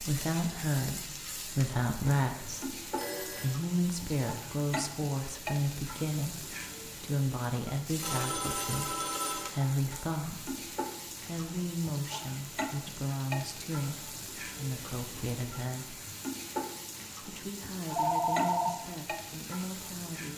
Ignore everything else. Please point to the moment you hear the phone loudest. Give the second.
18 s.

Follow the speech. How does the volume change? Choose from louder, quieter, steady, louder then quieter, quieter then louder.
quieter.